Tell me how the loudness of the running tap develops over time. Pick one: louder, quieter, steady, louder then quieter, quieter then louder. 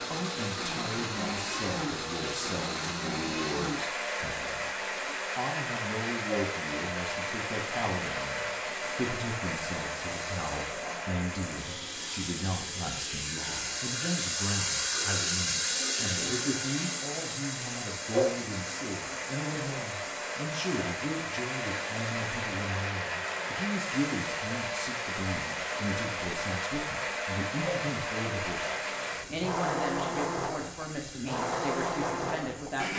louder then quieter.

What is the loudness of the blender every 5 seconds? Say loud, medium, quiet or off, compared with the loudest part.
loud, loud, medium, medium, loud, loud, loud.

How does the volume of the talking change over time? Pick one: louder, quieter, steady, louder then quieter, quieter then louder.
steady.